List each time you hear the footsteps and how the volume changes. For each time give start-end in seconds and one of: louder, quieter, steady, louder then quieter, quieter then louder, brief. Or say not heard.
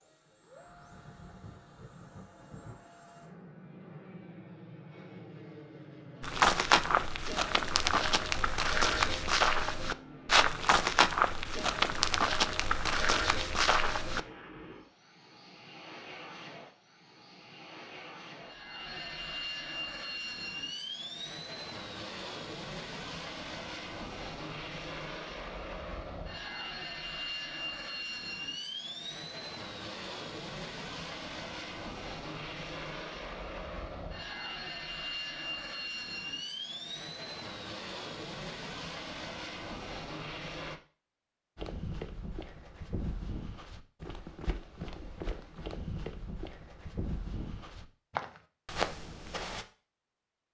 6.2-14.2 steady
41.5-49.6 louder.